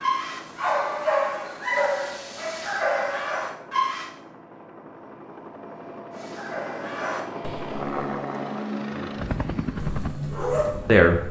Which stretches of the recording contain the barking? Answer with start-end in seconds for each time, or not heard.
0.0-4.1, 6.1-8.1, 9.7-11.1.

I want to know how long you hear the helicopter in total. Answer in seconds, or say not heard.
11 s.